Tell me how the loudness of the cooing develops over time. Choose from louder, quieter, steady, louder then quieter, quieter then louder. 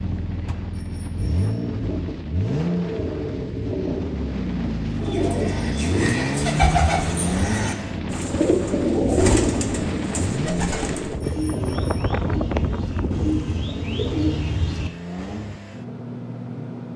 quieter then louder.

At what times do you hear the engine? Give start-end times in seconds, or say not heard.
0.0-16.9.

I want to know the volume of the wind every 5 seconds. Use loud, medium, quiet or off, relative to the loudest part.
medium, loud, loud, off.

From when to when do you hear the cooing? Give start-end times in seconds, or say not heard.
4.9-15.4.